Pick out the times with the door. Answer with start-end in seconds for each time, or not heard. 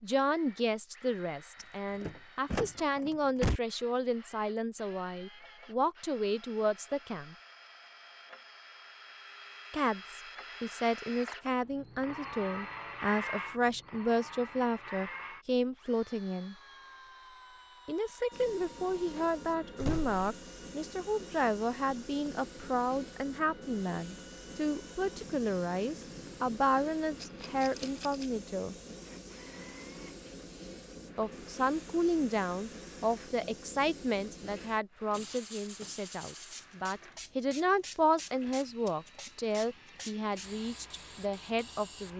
1.6-3.6, 18.9-20.2, 35.1-36.0.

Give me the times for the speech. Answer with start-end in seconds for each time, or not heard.
0.0-7.3, 9.7-16.6, 17.9-28.8, 31.1-42.1.